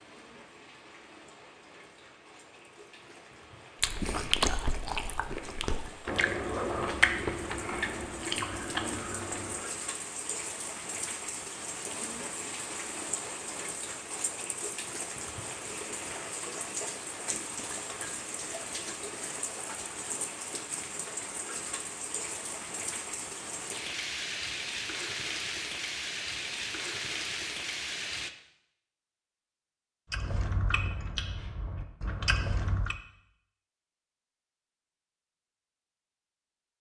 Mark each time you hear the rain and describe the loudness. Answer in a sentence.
You can hear the rain from 0.0 to 28.3 s, getting louder.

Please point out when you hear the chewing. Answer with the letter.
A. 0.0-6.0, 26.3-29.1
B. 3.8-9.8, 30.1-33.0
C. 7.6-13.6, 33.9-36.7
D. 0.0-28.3
B.